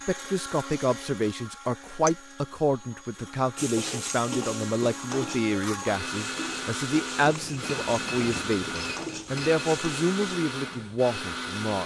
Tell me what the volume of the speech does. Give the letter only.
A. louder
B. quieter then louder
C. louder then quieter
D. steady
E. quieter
D.